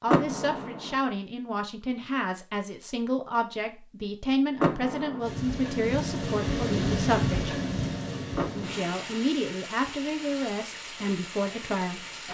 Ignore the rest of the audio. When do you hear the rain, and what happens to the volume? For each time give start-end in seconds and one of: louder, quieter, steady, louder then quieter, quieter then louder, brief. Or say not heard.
5.2-12.2 quieter.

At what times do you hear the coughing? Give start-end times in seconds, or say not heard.
not heard.